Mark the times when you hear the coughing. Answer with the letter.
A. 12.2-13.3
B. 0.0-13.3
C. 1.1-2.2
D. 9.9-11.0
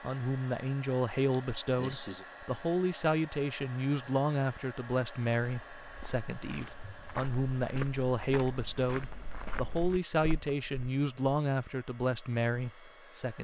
C.